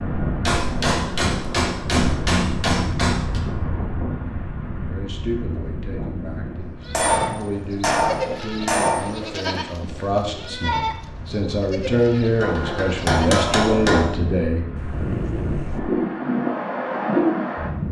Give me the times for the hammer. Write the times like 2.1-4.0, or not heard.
0.5-3.4, 6.9-9.1, 12.3-14.1.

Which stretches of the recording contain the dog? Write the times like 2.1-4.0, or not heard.
14.8-15.8.